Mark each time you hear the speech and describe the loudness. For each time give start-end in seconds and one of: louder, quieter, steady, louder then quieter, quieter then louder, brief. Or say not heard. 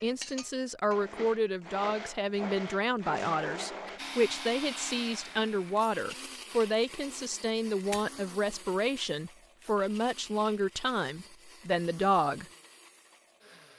0.0-12.4 steady.